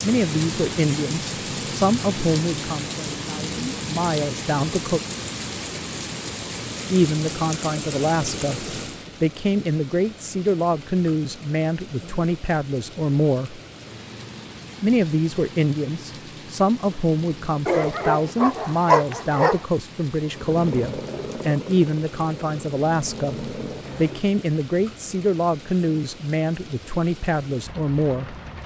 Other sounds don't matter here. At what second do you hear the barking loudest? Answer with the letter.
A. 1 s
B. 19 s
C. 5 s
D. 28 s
B.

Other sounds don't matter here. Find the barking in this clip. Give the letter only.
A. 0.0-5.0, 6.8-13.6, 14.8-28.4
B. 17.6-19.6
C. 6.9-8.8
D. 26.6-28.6
B.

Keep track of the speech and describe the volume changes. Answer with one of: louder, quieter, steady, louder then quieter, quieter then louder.
steady.